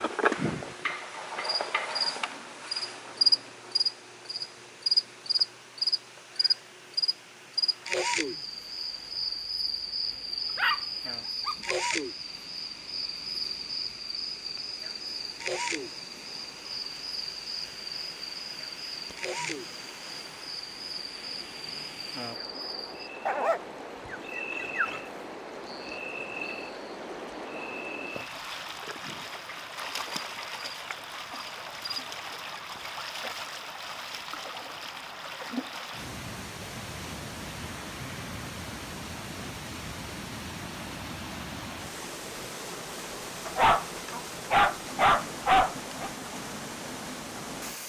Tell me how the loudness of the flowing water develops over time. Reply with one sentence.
The loudness of the flowing water goes up.